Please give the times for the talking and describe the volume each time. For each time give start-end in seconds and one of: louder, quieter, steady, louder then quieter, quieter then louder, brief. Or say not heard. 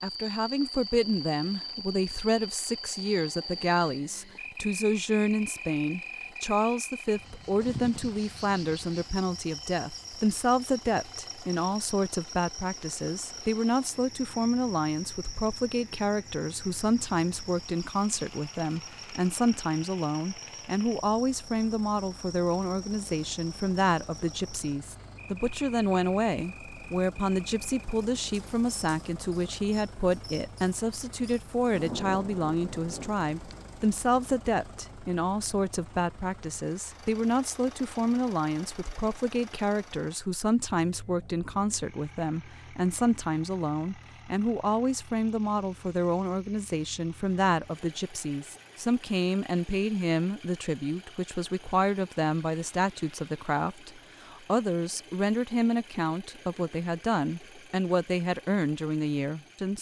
0.0-59.7 steady.